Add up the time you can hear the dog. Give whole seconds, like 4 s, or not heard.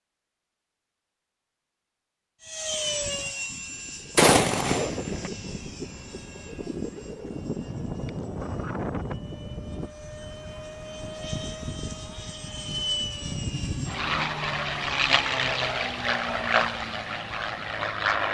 not heard.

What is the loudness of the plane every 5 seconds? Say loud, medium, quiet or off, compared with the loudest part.
medium, medium, medium, loud.